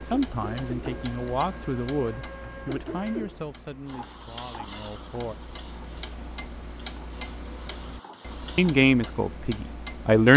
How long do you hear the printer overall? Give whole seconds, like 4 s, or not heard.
9 s.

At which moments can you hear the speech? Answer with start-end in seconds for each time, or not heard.
0.1-5.3, 8.6-10.3.